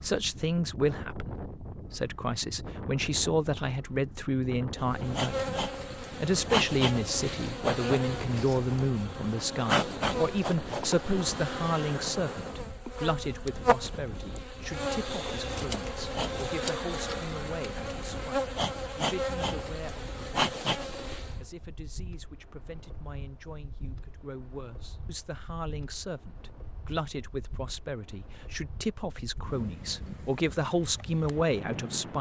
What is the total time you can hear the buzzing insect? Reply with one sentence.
The buzzing insect can be heard for 17 seconds in total.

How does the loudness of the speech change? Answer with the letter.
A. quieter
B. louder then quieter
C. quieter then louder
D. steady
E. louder
C.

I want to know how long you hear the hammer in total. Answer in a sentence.
You can't hear the hammer here.